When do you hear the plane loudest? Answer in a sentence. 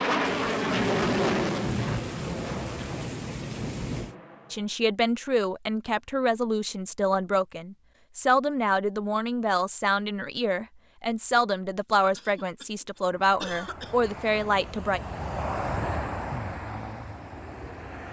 The volume of the plane peaks at 1 second.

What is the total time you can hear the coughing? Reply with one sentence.
You can hear the coughing for 2 seconds altogether.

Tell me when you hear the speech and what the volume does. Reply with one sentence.
The speech can be heard from 4.5 to 15.0 s, at a steady volume.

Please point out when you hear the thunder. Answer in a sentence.
The thunder can be heard from 0.2 to 4.2 s.